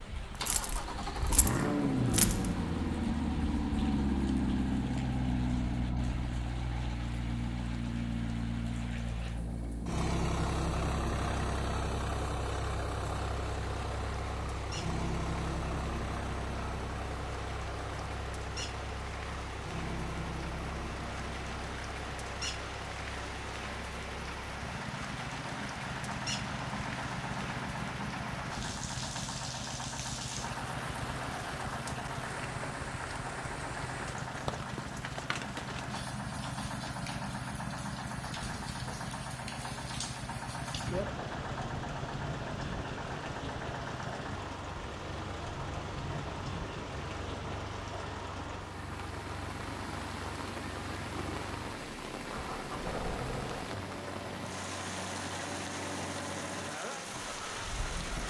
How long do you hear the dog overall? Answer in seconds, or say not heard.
not heard.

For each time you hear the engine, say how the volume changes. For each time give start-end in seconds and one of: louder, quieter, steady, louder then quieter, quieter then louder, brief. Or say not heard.
0.0-58.2 quieter.